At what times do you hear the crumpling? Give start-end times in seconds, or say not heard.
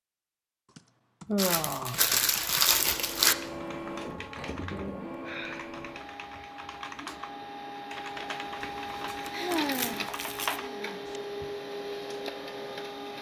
1.4-3.4, 8.6-10.6.